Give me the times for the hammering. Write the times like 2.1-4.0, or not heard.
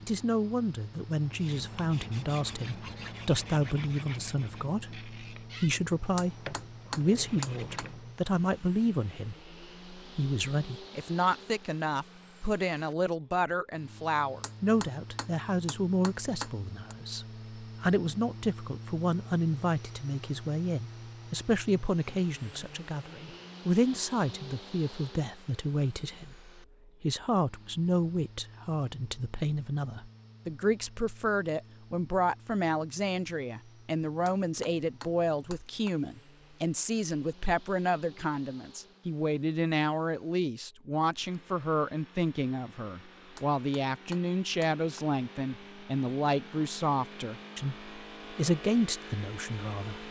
6.2-7.8, 14.4-16.9, 34.2-36.0, 43.4-45.0.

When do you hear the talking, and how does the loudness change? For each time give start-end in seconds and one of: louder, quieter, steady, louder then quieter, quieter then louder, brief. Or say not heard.
0.0-50.0 steady.